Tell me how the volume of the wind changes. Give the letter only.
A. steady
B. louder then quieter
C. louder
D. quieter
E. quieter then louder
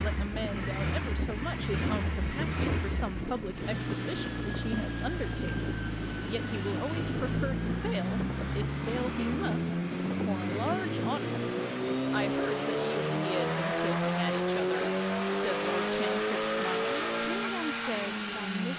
A.